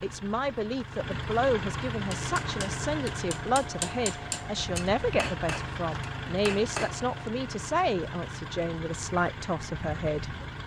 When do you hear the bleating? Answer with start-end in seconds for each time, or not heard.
not heard.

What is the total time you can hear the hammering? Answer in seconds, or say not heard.
5 s.